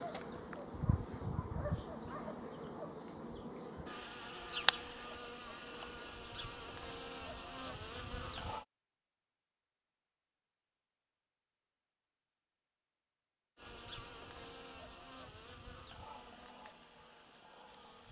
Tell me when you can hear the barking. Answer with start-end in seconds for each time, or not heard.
0.0-3.0.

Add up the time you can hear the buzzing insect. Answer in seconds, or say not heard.
13 s.